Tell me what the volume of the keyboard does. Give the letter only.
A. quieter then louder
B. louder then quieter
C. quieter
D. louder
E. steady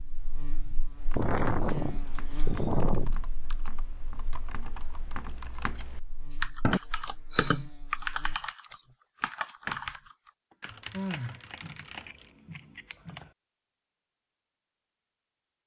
B.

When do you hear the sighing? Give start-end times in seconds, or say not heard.
0.7-3.2, 6.8-7.6, 10.5-11.4.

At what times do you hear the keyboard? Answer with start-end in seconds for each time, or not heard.
0.8-12.3.